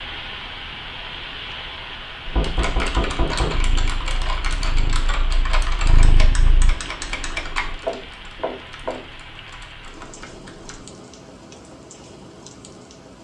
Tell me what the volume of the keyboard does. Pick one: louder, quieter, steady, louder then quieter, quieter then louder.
quieter.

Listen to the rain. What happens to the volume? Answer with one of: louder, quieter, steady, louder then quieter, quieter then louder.
quieter.